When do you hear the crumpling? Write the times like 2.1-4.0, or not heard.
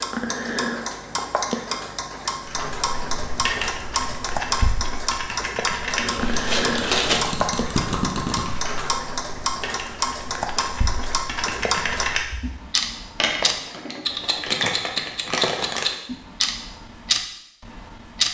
6.0-7.3, 13.2-15.9.